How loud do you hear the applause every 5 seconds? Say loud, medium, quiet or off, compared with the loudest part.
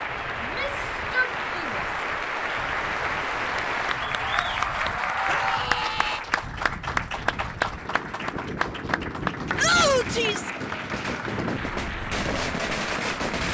loud, loud, medium.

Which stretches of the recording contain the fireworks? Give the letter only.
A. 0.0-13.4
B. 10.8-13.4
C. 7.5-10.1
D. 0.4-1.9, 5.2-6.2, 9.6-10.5
B.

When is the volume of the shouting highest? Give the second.
10 s.